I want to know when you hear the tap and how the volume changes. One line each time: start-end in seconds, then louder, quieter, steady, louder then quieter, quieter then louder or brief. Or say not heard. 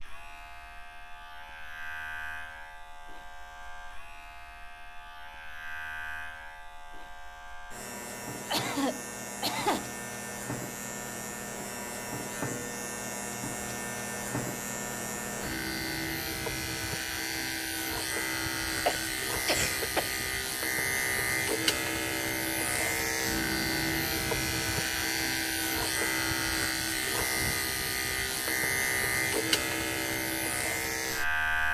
not heard.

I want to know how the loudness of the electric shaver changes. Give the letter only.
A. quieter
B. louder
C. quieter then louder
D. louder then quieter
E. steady
B.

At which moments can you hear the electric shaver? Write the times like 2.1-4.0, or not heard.
0.0-31.6.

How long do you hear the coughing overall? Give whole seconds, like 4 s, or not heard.
3 s.